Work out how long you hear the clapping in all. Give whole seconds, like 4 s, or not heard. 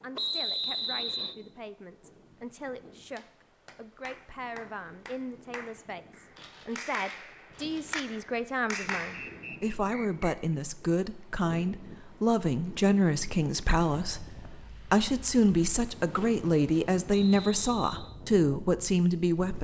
6 s.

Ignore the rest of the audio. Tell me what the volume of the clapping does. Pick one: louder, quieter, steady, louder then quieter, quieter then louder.
louder.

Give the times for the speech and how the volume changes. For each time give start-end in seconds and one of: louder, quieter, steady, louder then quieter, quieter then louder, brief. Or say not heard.
0.0-19.6 louder.